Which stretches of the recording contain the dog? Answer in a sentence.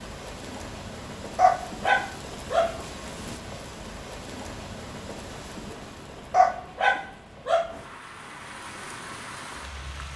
The dog can be heard from 1.4 to 3.4 s and from 6.3 to 7.8 s.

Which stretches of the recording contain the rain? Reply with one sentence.
The rain can be heard from 0.0 to 10.1 s.